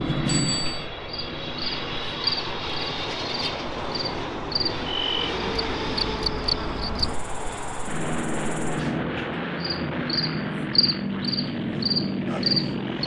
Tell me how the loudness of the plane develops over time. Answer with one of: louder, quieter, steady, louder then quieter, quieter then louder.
steady.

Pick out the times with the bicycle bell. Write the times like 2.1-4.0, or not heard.
0.2-0.8.